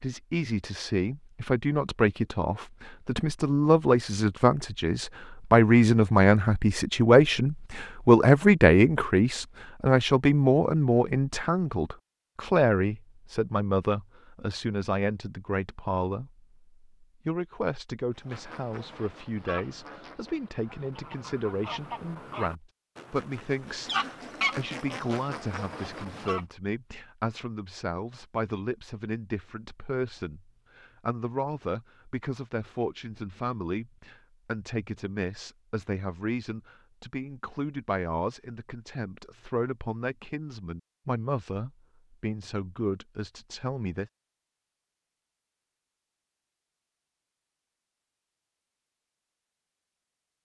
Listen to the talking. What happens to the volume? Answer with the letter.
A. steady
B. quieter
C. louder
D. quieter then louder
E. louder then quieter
B.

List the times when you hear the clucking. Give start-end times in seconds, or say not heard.
18.1-26.4.